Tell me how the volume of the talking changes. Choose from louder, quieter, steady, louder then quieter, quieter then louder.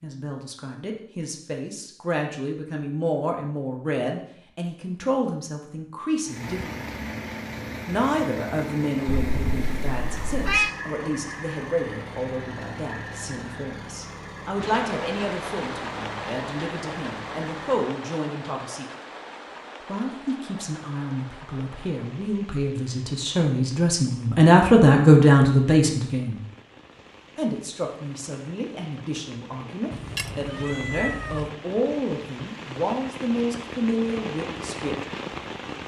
louder then quieter.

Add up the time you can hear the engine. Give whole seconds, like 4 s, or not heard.
12 s.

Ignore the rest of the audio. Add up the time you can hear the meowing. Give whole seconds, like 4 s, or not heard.
3 s.